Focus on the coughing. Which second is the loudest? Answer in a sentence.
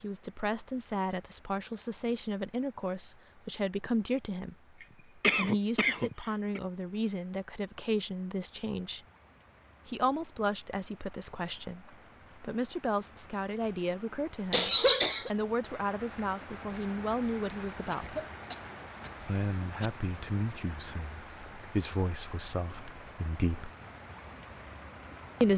The volume of the coughing peaks at 15 seconds.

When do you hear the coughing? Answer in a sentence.
The coughing can be heard from 5.2 to 6.6 s, from 14.5 to 15.3 s and from 17.9 to 19.9 s.